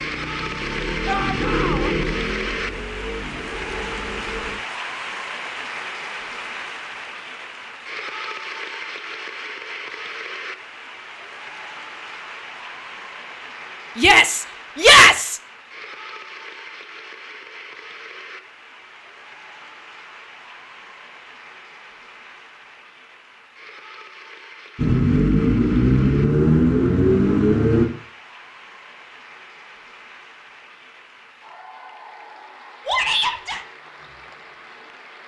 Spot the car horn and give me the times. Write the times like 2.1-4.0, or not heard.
not heard.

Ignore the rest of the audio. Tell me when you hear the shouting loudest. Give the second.
15 s.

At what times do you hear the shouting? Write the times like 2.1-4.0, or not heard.
1.1-1.9, 13.9-15.4, 32.9-33.6.